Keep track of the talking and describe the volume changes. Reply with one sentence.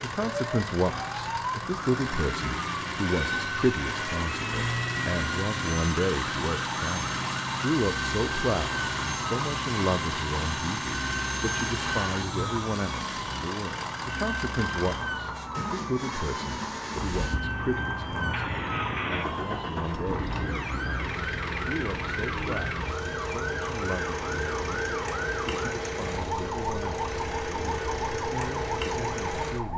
The volume of the talking goes down.